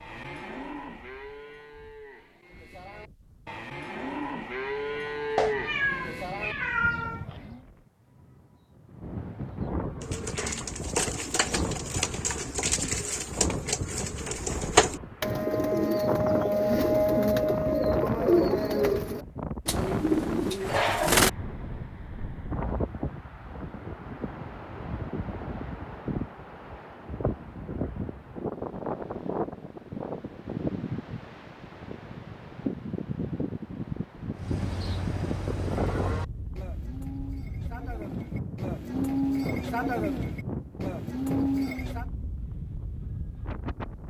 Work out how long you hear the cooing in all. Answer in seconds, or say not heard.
11 s.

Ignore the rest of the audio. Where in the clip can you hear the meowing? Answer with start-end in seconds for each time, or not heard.
5.3-7.2.